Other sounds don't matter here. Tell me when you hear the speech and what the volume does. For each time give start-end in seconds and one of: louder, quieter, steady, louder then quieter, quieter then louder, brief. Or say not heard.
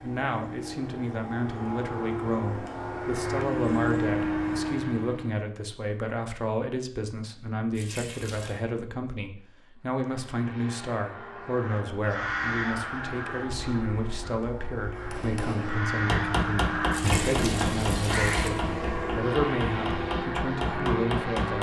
0.0-21.5 steady.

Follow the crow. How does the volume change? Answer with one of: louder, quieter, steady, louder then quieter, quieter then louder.
quieter then louder.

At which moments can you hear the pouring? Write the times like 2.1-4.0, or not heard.
7.8-8.6, 16.9-18.5.